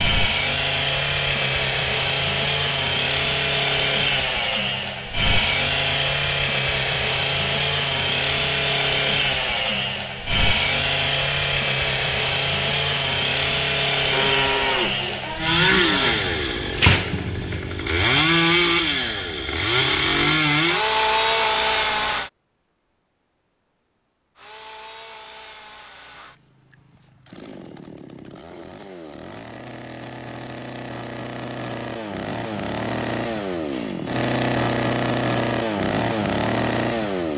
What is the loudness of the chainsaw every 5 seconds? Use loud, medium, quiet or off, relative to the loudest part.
loud, loud, loud, loud, loud, quiet, medium, loud.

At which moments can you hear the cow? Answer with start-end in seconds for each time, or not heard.
14.1-16.1.